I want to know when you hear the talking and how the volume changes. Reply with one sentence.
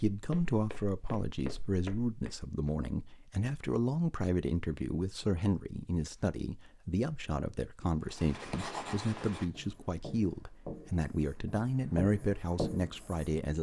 The talking can be heard from 0.0 to 13.5 s, at a steady volume.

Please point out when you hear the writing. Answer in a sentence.
The writing can be heard from 8.1 to 13.3 s.